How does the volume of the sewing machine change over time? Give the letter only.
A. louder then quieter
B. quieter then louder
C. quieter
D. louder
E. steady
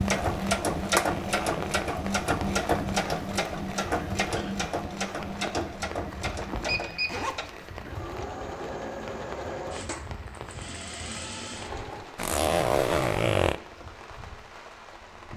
C.